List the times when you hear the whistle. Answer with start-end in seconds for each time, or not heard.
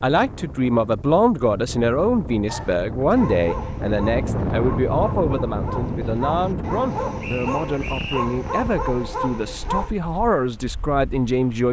7.2-8.2.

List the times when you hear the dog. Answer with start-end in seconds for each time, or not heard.
2.5-9.9.